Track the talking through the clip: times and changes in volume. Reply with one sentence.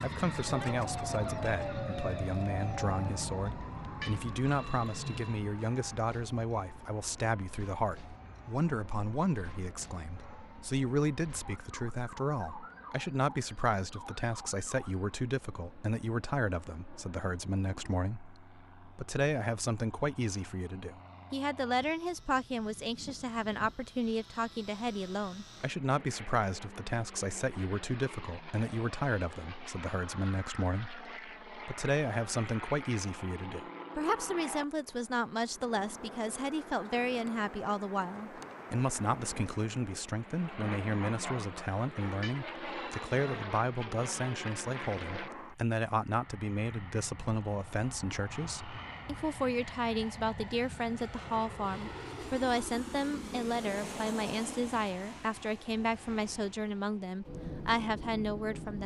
You can hear the talking from 0.0 to 58.8 s, at a steady volume.